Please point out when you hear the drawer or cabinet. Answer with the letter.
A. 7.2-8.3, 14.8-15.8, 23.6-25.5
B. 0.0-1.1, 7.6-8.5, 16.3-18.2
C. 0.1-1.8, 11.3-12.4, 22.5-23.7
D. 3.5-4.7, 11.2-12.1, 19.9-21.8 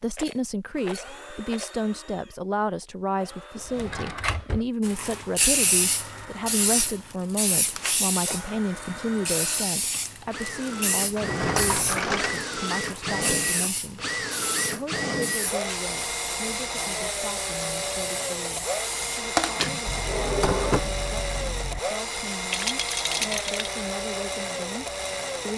D.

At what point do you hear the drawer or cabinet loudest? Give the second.
21 s.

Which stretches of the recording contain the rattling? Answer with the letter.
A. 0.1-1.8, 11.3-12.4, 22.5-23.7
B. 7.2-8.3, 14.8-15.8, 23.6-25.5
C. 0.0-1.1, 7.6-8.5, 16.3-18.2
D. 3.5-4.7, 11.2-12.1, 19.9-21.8
A.